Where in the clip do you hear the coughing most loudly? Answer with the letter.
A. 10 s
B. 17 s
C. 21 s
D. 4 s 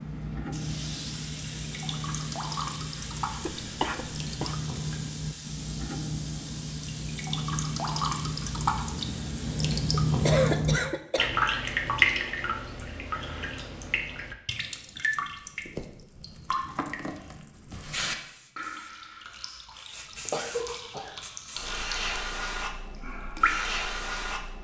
A.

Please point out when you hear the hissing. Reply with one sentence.
You can hear the hissing from 0.0 to 10.7 s and from 18.2 to 24.5 s.